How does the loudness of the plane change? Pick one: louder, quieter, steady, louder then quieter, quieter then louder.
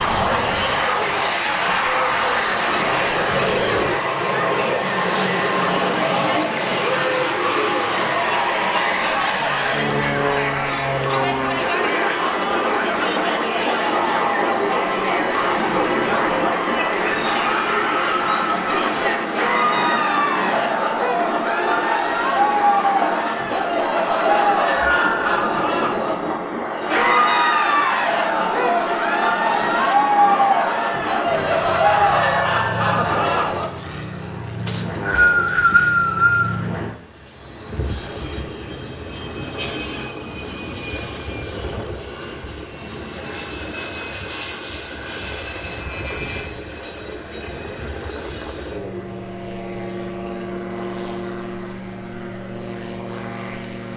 quieter.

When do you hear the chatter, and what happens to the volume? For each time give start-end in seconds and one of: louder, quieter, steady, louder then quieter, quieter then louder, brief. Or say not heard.
0.0-33.7 louder.